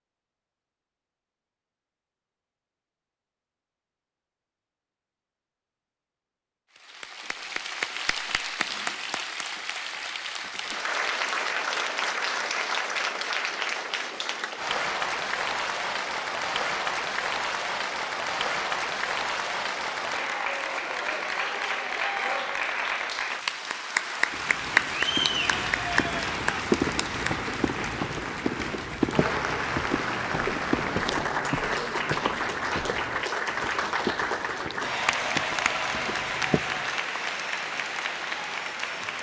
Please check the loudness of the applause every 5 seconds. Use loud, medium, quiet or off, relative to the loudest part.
off, medium, loud, loud, loud, loud, loud, loud.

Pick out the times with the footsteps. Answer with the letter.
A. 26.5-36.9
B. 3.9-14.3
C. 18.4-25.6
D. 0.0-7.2
A.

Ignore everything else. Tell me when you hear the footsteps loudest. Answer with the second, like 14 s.
27 s.